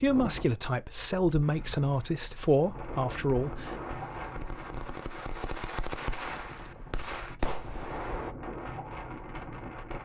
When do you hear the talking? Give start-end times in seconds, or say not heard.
0.0-3.8.